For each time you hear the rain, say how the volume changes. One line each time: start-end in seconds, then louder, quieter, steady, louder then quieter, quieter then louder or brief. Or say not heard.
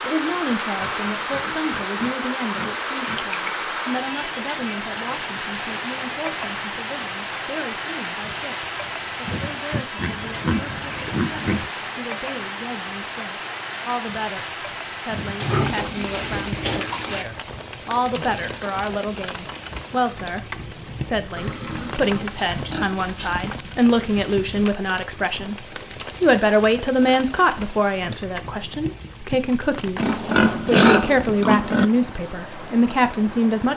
0.0-33.7 quieter.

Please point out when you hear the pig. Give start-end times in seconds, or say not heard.
0.8-3.6, 9.9-11.7, 15.3-17.2, 21.4-23.4, 29.9-31.9.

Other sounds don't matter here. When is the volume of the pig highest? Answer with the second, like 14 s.
31 s.